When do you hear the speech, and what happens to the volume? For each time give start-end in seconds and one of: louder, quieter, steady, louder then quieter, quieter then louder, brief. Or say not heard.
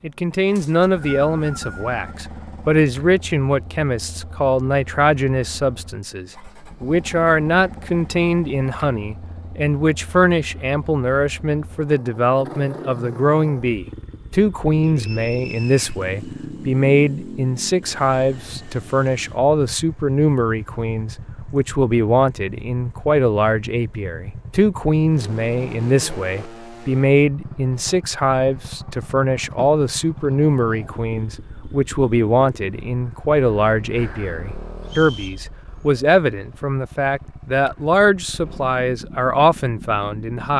0.0-40.5 steady.